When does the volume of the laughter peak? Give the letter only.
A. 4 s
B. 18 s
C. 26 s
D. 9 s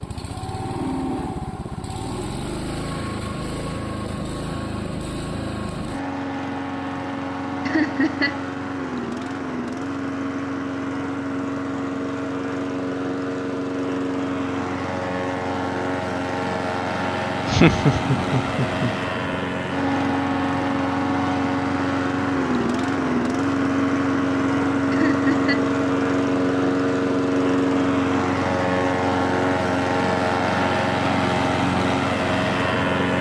B.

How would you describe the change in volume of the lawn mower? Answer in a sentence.
The volume of the lawn mower goes up.